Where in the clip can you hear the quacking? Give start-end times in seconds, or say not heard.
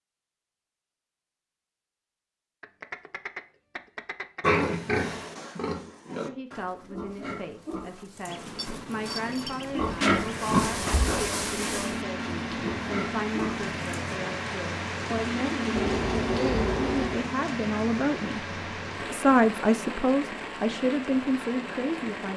2.6-4.7, 8.2-10.8, 15.8-17.3.